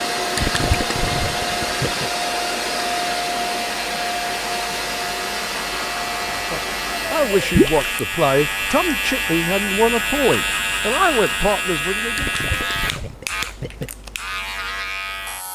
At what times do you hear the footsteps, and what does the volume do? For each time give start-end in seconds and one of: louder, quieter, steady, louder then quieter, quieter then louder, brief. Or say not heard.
not heard.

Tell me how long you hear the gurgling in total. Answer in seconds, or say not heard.
4 s.